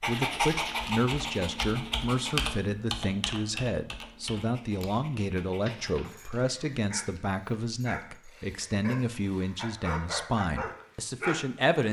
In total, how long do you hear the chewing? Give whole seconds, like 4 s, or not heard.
not heard.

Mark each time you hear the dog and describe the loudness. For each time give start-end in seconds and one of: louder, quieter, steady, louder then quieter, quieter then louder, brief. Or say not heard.
0.0-2.4 brief
4.3-11.8 louder.